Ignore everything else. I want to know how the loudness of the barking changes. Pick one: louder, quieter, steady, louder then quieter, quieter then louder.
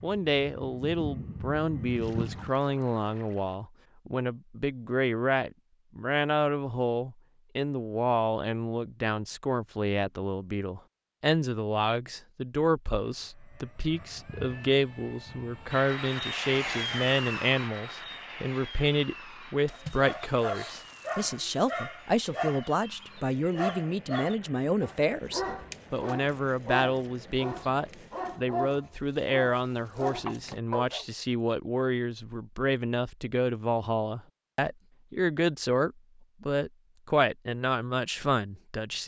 steady.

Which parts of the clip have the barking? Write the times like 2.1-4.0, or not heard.
19.6-31.1.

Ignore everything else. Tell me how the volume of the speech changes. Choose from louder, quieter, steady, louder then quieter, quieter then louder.
steady.